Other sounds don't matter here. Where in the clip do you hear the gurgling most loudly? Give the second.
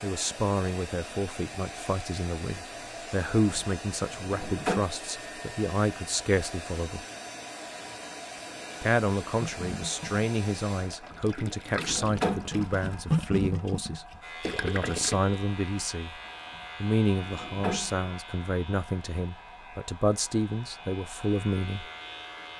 13 s.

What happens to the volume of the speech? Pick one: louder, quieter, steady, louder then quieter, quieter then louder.
steady.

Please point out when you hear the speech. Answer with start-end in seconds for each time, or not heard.
0.0-7.0, 8.8-16.2, 16.8-21.9.